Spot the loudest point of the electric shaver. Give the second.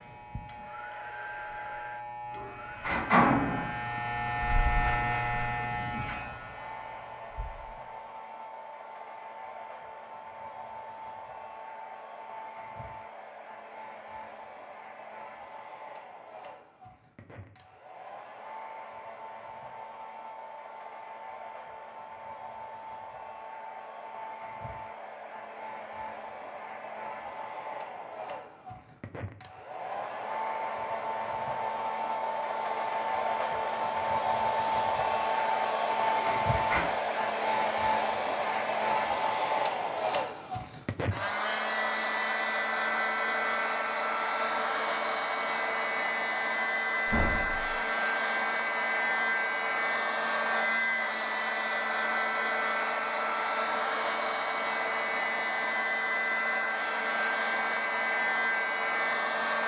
5 s.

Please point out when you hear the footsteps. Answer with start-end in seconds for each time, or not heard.
not heard.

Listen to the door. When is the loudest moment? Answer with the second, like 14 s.
3 s.